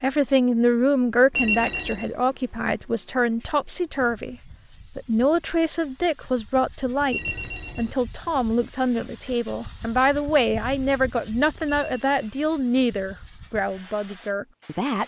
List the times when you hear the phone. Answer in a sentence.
You can hear the phone from 1.3 to 2.1 s, from 7.1 to 8.0 s and from 11.7 to 12.3 s.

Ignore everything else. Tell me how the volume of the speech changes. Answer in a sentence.
The volume of the speech stays about the same.